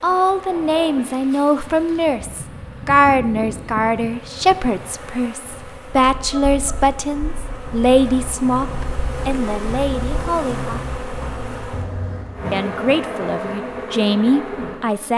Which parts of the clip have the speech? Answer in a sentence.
The speech can be heard from 0.0 to 10.8 s and from 12.5 to 15.1 s.